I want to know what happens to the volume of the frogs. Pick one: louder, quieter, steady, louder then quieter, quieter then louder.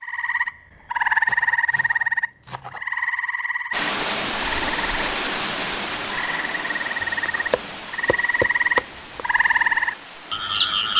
quieter then louder.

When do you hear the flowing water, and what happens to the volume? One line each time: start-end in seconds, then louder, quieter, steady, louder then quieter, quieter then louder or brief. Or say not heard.
3.7-10.9 quieter.